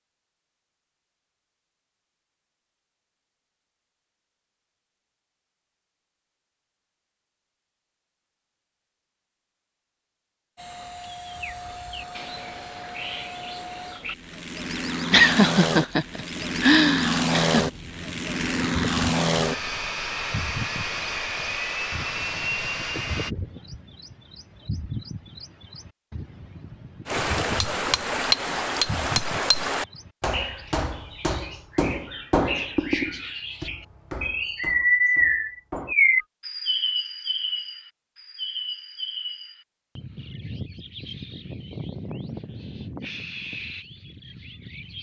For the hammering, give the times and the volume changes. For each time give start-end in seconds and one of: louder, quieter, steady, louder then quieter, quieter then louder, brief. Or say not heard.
27.1-36.2 quieter.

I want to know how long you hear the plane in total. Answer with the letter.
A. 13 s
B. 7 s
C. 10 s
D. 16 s
A.